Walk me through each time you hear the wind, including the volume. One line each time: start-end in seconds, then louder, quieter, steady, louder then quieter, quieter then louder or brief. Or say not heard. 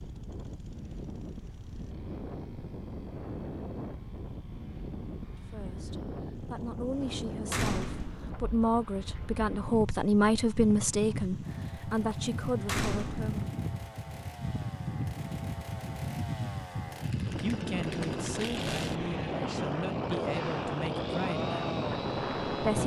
0.0-22.8 louder.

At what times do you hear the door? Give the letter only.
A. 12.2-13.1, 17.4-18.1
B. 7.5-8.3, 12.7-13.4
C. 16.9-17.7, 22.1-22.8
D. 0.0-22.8
B.